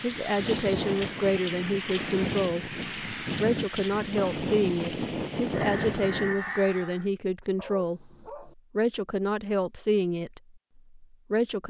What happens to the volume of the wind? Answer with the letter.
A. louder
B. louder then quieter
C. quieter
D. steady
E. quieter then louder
D.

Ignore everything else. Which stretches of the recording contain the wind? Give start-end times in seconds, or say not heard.
0.0-6.4.